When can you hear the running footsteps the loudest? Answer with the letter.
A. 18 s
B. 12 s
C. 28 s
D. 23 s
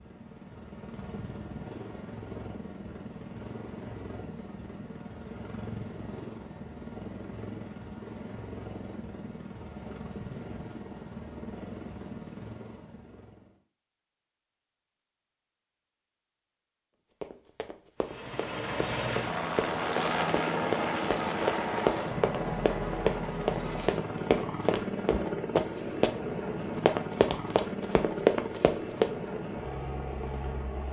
C.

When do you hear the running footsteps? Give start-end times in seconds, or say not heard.
17.2-29.4.